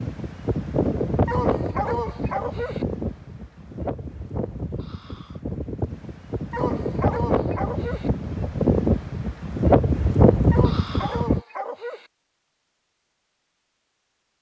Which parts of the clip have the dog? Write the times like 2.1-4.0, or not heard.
1.2-2.9, 6.5-8.1, 10.5-12.1.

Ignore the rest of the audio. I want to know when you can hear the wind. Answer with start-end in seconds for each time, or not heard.
0.0-11.4.